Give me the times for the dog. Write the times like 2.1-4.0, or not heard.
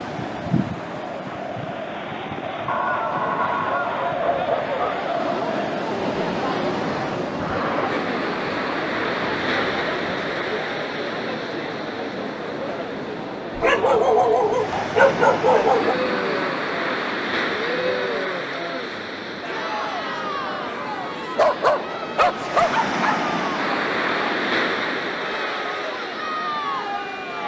2.6-5.0, 13.6-15.9, 21.4-23.2.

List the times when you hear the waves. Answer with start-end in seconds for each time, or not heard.
0.0-27.4.